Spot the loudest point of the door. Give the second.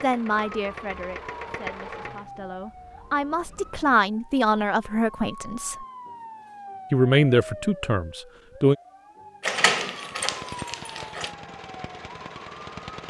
10 s.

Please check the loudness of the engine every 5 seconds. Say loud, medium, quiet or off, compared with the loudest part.
loud, off, loud.